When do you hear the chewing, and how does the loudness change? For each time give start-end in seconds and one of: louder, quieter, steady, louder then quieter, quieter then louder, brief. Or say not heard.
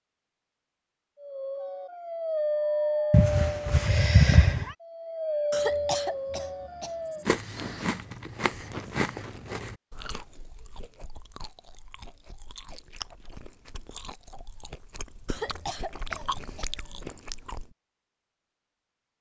7.2-17.7 quieter then louder.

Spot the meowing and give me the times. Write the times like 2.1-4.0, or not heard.
3.1-4.7.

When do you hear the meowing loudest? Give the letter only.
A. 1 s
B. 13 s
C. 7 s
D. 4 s
D.